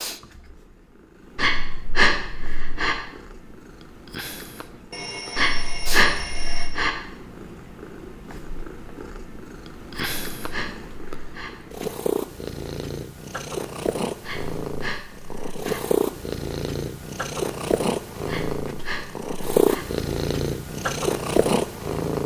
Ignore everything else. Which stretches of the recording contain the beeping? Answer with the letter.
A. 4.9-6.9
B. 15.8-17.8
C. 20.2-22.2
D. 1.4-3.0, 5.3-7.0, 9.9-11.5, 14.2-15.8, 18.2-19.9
A.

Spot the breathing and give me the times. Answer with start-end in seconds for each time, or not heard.
1.4-3.0, 5.3-7.0, 9.9-11.5, 14.2-15.8, 18.2-19.9.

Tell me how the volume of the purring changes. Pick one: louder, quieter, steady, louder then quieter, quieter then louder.
louder.